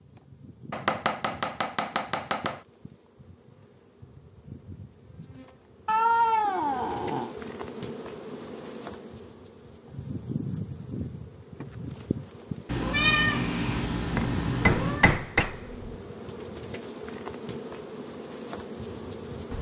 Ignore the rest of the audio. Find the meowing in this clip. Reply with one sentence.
You can hear the meowing from 5.8 to 7.3 s and from 12.7 to 15.1 s.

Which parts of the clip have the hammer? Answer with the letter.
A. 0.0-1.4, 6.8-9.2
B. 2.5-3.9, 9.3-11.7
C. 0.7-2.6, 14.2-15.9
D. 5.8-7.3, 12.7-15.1
C.